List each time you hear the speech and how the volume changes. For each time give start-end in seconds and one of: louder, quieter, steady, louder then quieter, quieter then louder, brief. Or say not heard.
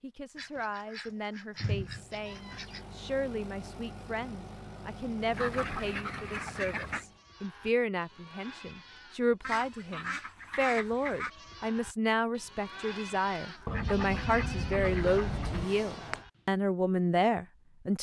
0.0-17.9 louder.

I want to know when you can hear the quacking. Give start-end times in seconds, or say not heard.
0.3-2.8, 5.3-7.0, 9.4-11.3, 13.7-15.7.